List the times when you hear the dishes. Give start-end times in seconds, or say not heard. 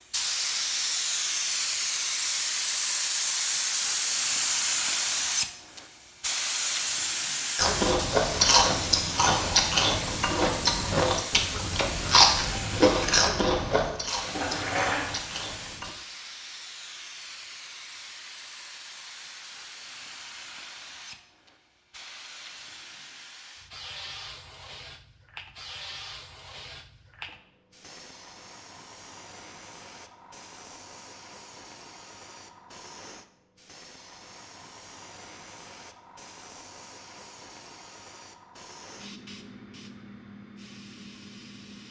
14.3-15.2.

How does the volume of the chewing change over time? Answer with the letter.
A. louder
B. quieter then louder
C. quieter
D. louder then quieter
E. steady
C.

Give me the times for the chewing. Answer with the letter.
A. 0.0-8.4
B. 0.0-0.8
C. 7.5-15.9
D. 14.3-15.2
C.